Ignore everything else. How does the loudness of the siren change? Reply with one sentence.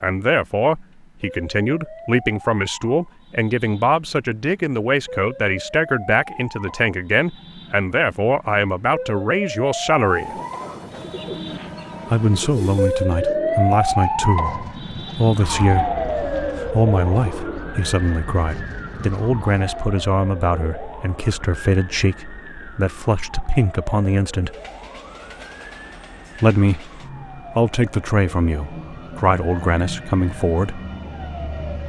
The volume of the siren goes up, then down.